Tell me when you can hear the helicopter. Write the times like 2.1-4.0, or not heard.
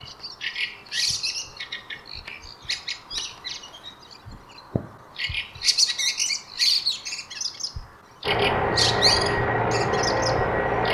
8.2-10.8.